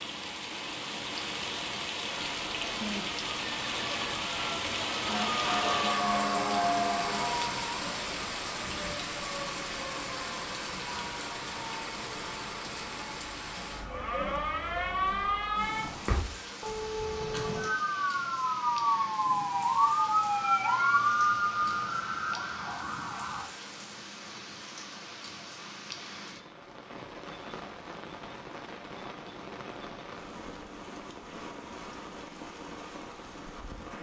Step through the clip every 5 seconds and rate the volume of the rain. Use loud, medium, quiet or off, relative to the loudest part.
loud, loud, medium, medium, medium, medium, medium.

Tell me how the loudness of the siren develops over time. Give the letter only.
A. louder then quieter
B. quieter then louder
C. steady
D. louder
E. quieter
B.